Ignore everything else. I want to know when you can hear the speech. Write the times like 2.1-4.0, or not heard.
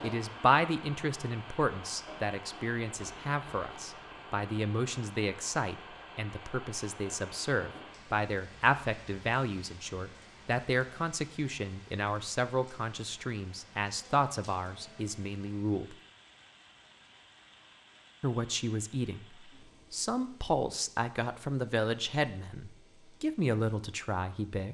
0.0-15.9, 18.2-19.2, 19.9-24.7.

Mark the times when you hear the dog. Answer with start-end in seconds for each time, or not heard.
not heard.